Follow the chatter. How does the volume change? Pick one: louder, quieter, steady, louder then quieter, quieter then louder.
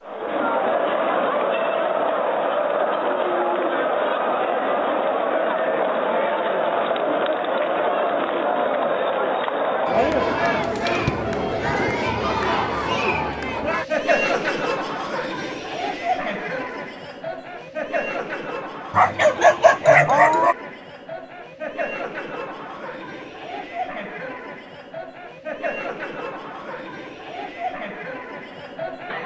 quieter.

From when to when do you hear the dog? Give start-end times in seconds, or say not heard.
18.9-20.6.